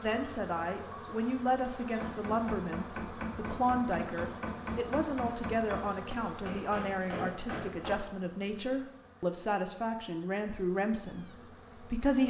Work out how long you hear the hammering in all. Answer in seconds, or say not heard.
6 s.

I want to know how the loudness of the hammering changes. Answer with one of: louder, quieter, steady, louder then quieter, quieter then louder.
steady.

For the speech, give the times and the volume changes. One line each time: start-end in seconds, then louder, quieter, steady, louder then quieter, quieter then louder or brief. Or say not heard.
0.0-12.2 steady.